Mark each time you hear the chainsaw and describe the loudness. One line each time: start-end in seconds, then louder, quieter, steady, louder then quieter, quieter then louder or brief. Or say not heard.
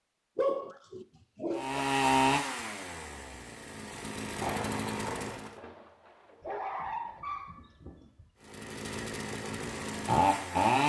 1.5-5.5 quieter then louder
8.4-10.8 brief.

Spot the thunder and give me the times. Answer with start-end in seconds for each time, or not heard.
4.3-6.8.